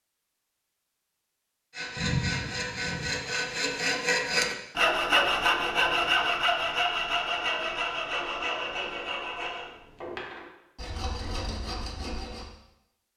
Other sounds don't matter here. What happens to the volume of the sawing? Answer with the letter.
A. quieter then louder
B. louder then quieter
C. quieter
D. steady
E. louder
B.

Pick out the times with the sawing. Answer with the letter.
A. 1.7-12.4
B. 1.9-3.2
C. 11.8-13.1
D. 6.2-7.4
A.